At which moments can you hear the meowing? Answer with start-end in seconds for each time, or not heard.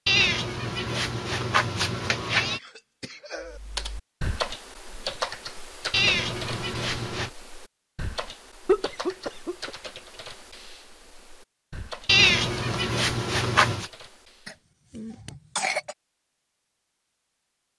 0.1-2.6, 5.9-7.3, 12.1-13.9.